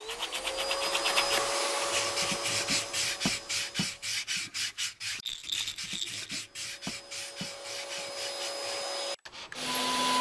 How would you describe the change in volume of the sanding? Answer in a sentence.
The loudness of the sanding goes down.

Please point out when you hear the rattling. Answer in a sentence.
You can hear the rattling from 5.2 to 6.5 s.